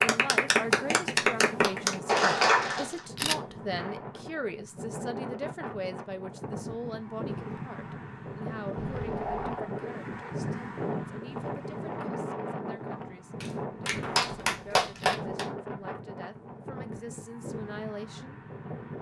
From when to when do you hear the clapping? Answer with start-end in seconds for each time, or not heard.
0.0-3.0, 13.4-15.4.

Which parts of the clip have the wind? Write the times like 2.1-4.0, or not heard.
0.0-18.9.